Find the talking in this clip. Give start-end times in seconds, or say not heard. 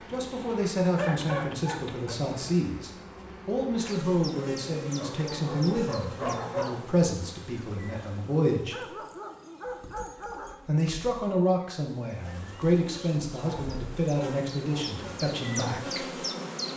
0.0-8.9, 10.7-16.1.